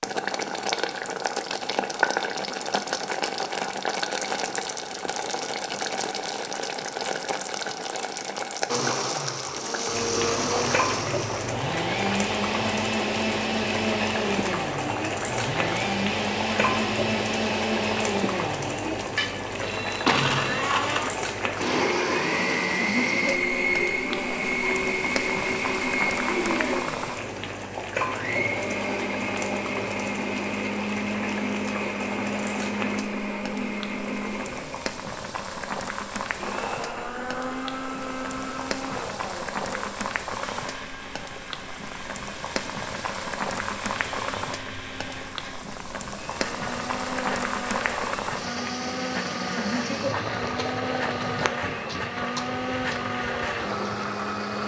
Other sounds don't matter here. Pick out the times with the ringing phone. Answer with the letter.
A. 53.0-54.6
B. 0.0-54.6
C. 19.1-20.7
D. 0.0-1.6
C.